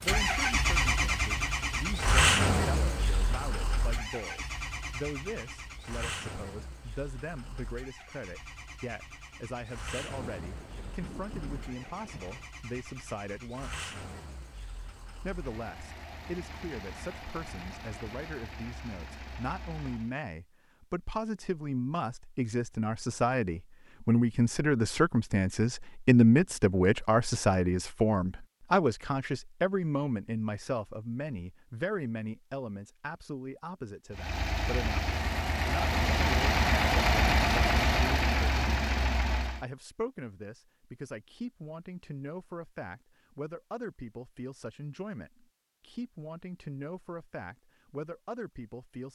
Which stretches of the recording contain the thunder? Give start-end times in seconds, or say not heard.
10.0-12.5.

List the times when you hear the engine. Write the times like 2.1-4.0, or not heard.
0.0-20.1, 34.1-39.6.